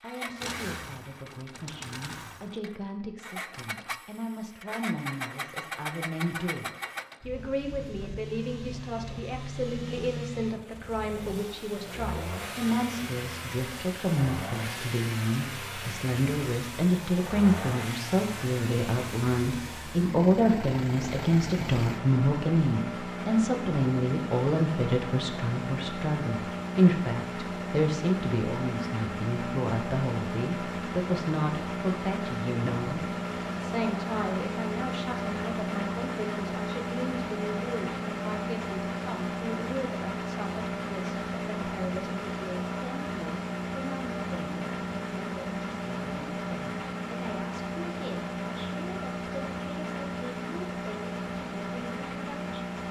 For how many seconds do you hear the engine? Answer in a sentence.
The engine can be heard for 53 seconds in total.